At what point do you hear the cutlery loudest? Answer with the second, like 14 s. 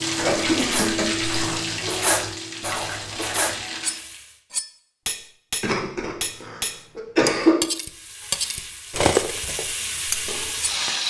9 s.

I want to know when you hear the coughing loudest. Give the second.
7 s.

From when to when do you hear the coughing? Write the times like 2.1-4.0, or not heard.
0.1-1.6, 5.6-7.6.